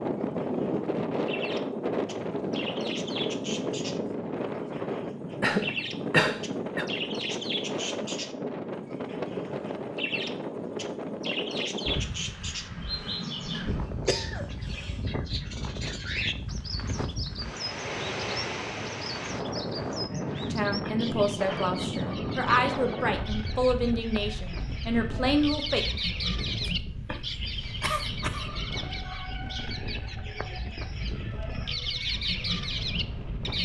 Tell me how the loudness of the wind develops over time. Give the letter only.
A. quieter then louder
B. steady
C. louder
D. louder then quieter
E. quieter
E.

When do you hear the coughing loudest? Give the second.
6 s.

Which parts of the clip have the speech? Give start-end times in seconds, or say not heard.
20.5-25.9.